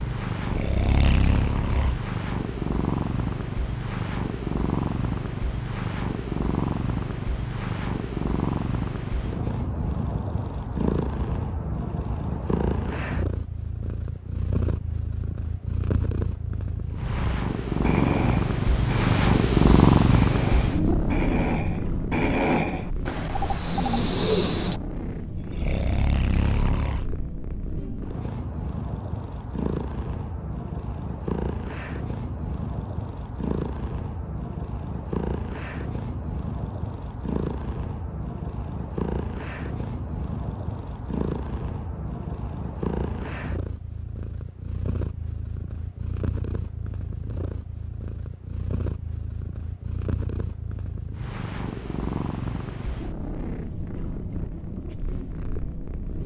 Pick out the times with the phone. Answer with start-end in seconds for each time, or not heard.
23.3-24.0.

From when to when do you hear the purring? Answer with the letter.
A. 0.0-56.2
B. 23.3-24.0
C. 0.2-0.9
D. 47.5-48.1
A.